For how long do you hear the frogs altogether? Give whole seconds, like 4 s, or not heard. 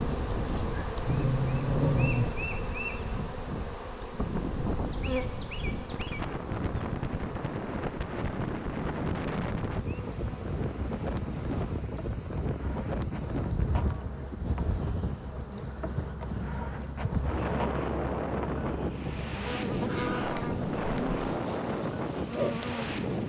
not heard.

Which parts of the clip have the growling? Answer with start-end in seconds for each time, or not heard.
0.5-2.2.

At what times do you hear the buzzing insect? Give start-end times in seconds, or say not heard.
0.0-23.2.